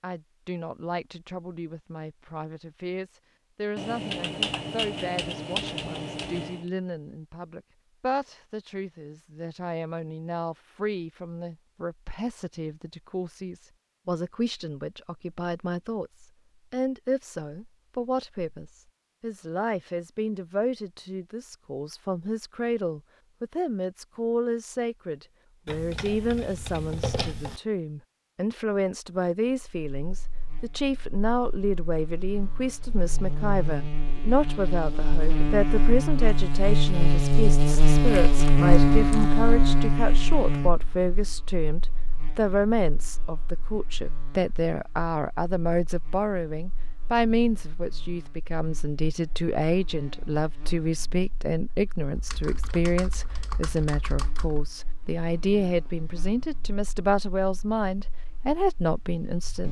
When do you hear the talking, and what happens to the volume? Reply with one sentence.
You can hear the talking from 0.0 to 59.6 s, getting louder.